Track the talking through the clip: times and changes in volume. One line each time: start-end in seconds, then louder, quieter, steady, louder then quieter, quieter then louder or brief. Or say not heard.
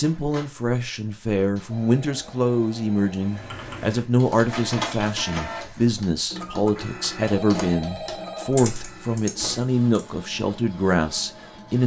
0.0-11.8 steady.